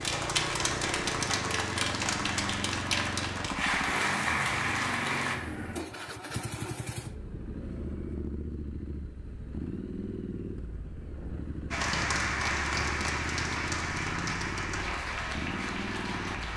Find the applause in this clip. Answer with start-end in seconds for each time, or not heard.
0.0-5.4, 11.7-16.5.